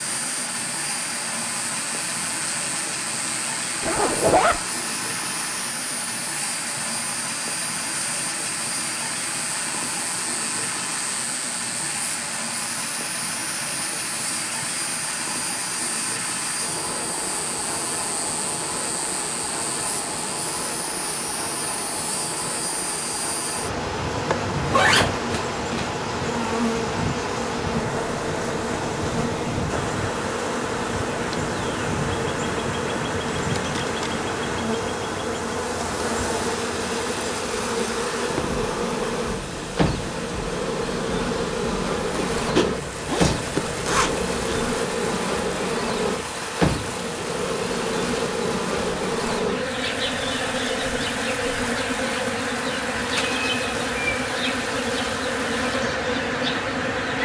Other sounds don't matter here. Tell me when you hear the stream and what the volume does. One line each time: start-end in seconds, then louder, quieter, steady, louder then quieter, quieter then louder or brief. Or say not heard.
0.0-57.1 steady.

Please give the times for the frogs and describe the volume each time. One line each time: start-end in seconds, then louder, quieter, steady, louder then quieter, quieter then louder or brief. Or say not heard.
not heard.